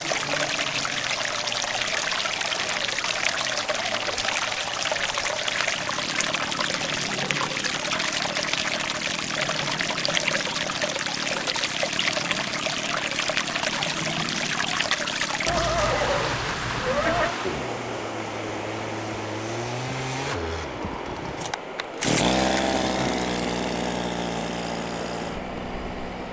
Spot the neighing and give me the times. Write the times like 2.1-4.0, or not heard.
15.4-17.4.